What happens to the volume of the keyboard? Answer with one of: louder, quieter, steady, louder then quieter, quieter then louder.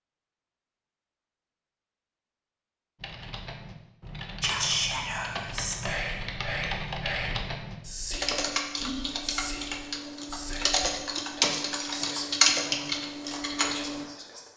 louder.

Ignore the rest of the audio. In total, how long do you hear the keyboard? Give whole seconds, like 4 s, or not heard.
11 s.